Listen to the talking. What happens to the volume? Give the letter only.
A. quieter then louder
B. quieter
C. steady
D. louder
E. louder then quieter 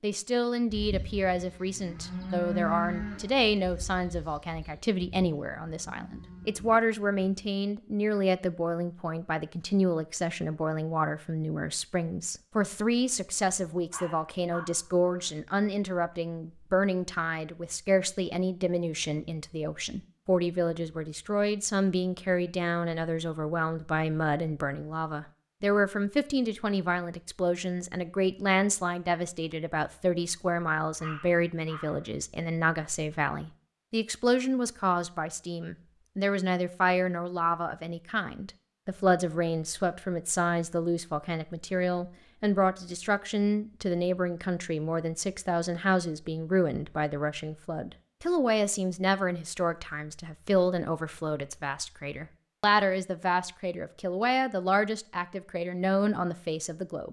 C.